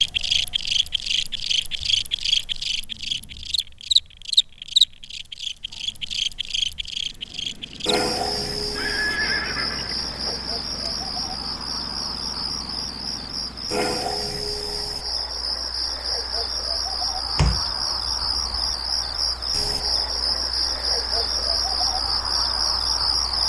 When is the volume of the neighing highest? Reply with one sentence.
The volume of the neighing peaks at 9 seconds.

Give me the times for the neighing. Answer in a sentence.
The neighing can be heard from 8.8 to 10.4 s.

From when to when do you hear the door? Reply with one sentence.
You can hear the door from 17.4 to 18.8 s.